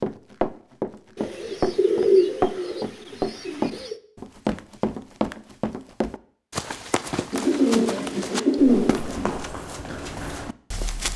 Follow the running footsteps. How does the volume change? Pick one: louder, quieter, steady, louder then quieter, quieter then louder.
quieter.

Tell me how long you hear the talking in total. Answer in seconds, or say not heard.
not heard.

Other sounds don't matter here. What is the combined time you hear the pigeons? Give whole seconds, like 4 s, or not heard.
5 s.